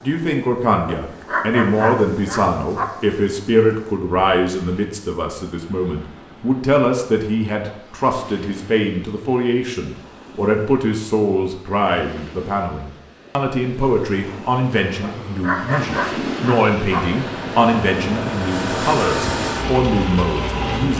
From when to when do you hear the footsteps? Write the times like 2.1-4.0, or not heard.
not heard.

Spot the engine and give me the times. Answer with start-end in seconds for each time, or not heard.
16.9-20.9.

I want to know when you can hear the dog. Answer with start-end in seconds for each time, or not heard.
0.8-2.9, 15.0-17.0.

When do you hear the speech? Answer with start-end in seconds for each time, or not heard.
0.0-20.9.